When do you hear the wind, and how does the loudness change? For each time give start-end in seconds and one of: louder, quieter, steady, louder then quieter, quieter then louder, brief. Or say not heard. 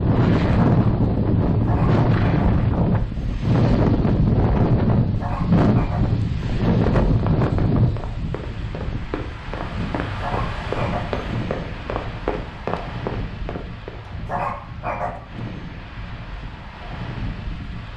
0.0-17.9 quieter.